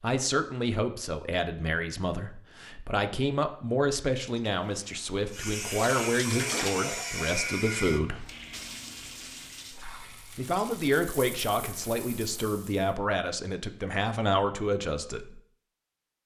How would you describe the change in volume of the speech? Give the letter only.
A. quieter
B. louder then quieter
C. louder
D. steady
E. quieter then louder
D.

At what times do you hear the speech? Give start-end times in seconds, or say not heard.
0.0-8.2, 10.3-15.4.